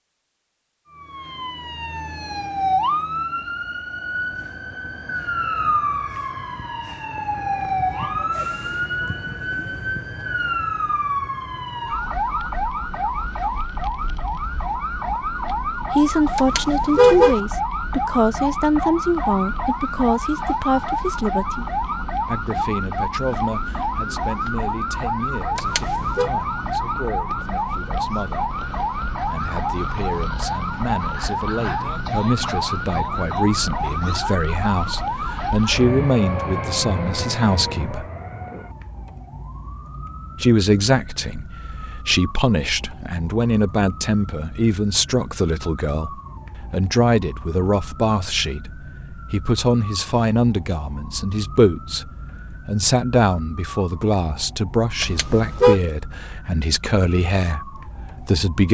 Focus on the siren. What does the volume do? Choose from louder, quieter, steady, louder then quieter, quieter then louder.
quieter.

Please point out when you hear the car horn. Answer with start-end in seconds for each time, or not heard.
16.4-17.4, 25.6-26.3, 55.0-55.8.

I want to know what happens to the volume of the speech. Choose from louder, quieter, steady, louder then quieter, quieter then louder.
quieter then louder.